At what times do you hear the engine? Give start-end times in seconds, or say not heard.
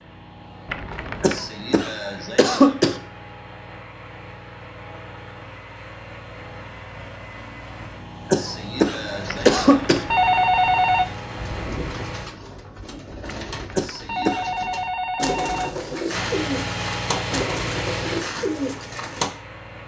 0.0-12.3, 16.1-19.8.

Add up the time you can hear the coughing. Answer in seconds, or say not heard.
4 s.